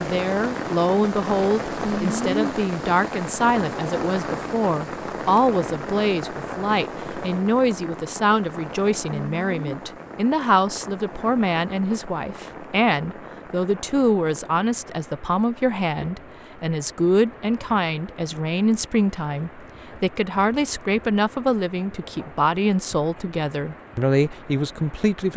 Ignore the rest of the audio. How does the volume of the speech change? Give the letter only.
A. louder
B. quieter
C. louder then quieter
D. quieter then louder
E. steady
E.